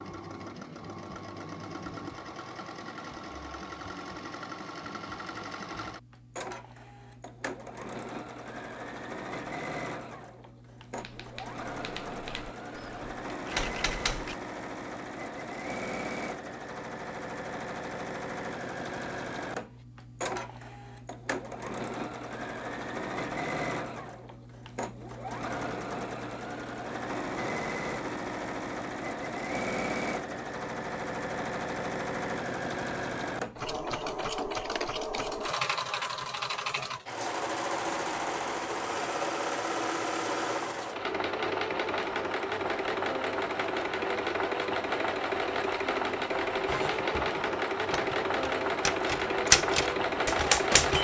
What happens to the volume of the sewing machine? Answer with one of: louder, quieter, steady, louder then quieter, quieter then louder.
louder.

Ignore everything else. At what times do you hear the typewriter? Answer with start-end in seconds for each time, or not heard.
10.9-14.3, 46.6-50.9.